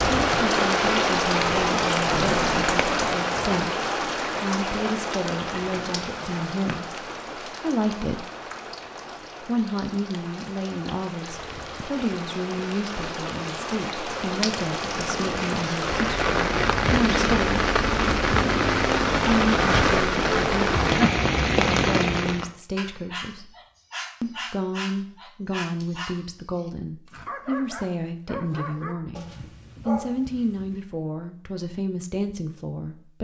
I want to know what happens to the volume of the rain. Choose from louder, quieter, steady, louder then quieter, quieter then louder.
quieter then louder.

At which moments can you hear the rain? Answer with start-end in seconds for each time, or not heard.
0.0-22.5.